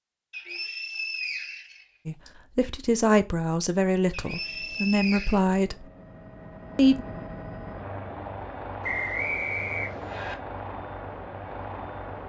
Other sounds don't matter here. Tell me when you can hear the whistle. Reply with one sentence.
You can hear the whistle from 0.3 to 2.3 s, from 4.1 to 5.4 s and from 8.8 to 10.3 s.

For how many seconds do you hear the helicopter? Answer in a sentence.
You can hear the helicopter for 8 seconds altogether.